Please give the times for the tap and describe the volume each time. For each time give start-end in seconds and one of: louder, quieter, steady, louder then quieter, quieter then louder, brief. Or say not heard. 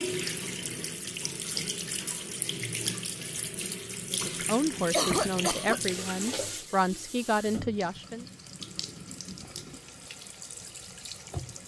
0.0-11.6 quieter.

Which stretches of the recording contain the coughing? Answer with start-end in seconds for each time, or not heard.
4.9-5.8.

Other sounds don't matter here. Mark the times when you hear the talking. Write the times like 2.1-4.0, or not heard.
4.1-8.2.